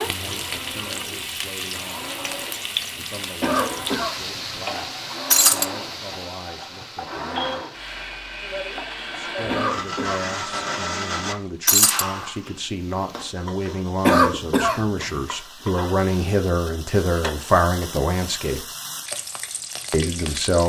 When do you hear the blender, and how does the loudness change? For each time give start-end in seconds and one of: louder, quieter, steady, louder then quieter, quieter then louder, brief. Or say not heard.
0.0-12.4 louder.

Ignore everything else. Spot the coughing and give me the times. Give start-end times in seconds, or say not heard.
3.4-4.4, 9.4-10.7, 14.1-15.2.